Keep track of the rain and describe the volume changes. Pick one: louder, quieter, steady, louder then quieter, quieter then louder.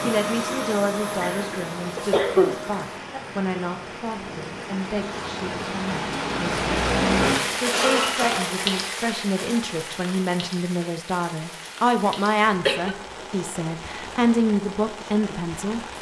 louder then quieter.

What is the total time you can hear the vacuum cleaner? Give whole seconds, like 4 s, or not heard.
3 s.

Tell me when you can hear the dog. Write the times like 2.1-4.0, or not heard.
not heard.